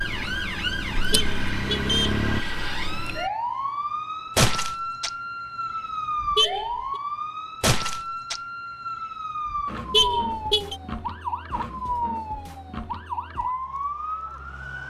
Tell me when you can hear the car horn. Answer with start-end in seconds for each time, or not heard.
1.1-2.2, 6.3-6.8, 9.9-10.8.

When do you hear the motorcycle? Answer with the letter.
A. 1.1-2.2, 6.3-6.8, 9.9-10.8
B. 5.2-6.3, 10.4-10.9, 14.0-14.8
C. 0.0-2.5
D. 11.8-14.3
C.